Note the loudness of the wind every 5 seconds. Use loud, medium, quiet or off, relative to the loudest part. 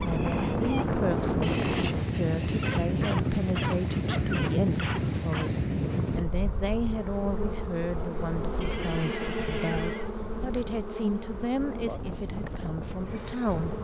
loud, medium, quiet.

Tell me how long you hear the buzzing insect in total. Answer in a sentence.
The buzzing insect can be heard for 10 seconds in total.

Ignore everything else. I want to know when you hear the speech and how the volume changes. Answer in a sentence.
You can hear the speech from 0.0 to 13.7 s, at a steady volume.